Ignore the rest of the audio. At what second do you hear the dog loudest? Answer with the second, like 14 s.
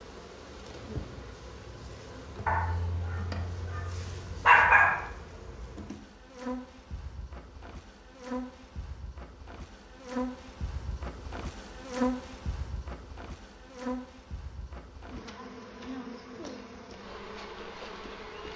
5 s.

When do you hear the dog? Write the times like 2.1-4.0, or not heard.
2.5-5.0.